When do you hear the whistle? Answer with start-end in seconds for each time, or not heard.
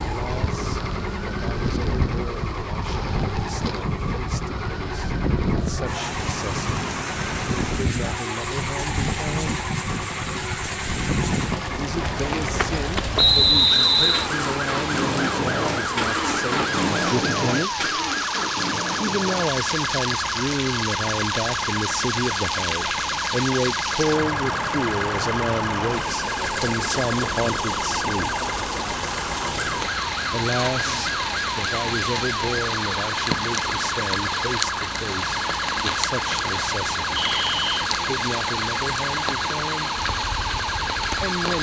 13.2-14.3, 37.1-37.7.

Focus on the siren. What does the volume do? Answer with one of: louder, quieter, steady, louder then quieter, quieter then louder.
steady.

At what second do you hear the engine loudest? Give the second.
17 s.